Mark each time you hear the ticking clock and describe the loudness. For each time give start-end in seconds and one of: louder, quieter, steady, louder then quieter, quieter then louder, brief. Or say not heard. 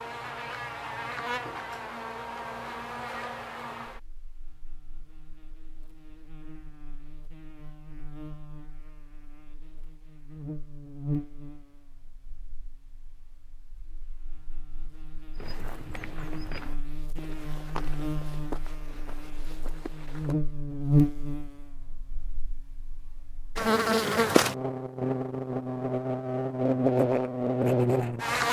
not heard.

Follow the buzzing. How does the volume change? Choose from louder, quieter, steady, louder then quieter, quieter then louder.
quieter then louder.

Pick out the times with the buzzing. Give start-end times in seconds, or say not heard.
0.0-28.4.